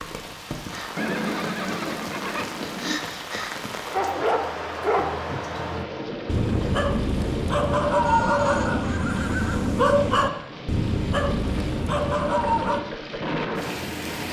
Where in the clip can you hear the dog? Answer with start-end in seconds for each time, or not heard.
3.9-12.8.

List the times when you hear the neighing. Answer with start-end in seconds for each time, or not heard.
0.9-3.0, 8.1-9.8.